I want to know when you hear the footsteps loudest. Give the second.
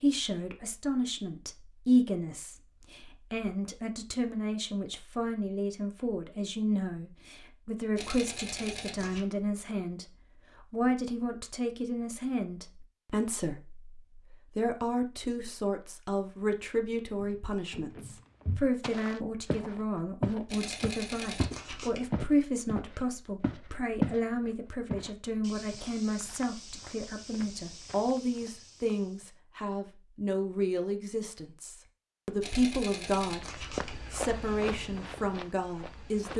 24 s.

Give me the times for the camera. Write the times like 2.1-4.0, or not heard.
8.0-9.2, 20.4-22.1, 32.4-34.0.